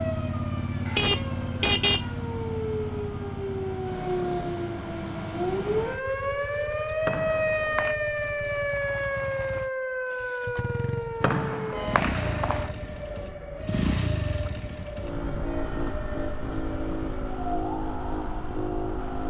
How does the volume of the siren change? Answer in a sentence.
The loudness of the siren goes up, then down.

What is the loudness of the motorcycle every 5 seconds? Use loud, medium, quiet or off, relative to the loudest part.
loud, medium, loud, loud.